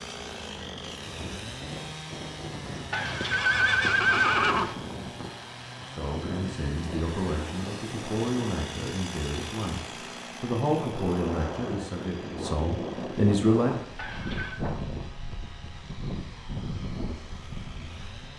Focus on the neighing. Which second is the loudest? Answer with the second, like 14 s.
4 s.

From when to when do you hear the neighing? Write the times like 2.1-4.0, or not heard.
2.9-4.8, 13.9-14.6.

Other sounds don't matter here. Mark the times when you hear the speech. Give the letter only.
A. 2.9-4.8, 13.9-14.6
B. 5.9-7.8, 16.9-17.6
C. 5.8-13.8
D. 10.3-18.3
C.